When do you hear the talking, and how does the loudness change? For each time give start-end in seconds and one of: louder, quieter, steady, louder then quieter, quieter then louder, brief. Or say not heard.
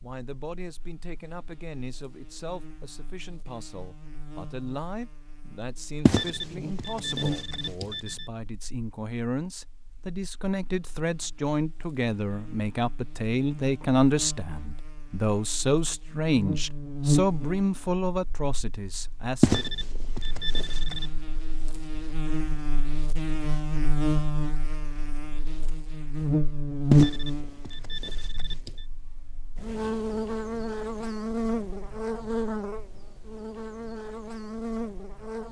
0.0-19.6 louder.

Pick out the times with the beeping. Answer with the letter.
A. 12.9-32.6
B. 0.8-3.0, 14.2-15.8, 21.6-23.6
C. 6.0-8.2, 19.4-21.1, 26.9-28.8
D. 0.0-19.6
C.